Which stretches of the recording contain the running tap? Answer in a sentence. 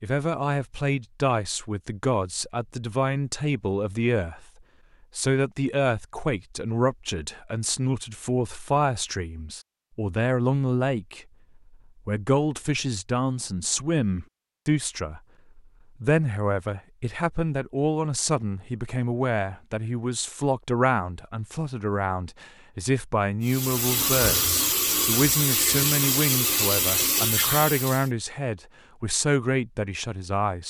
You can hear the running tap from 23.4 to 28.1 s.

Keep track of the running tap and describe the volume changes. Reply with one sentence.
The volume of the running tap stays about the same.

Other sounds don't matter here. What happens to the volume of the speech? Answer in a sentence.
The volume of the speech stays about the same.